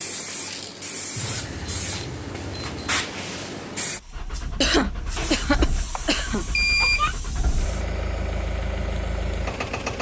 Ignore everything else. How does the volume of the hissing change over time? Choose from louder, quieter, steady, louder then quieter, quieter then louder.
quieter.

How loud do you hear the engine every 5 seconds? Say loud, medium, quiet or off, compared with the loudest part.
medium, loud.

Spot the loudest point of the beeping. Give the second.
7 s.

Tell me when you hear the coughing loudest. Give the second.
5 s.